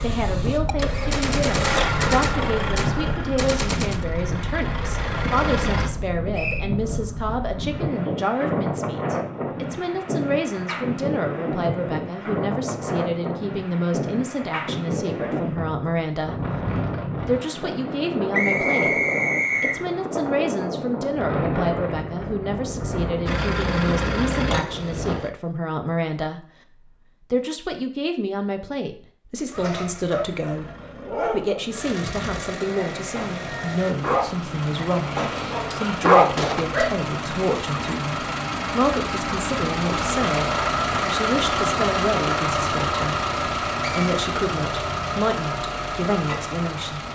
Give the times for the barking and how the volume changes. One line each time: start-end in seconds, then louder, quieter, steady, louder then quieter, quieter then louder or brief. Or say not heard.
29.5-37.0 quieter then louder.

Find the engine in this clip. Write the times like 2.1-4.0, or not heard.
0.0-5.9, 23.2-25.3, 29.5-47.1.